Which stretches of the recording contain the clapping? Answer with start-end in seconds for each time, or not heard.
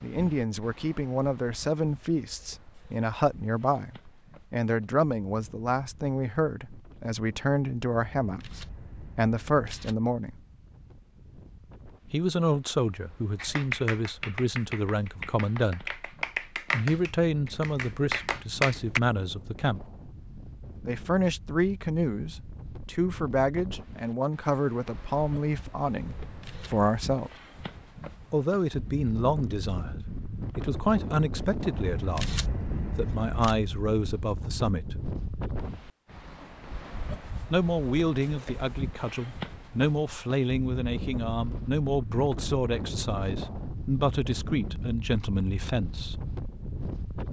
13.3-19.0.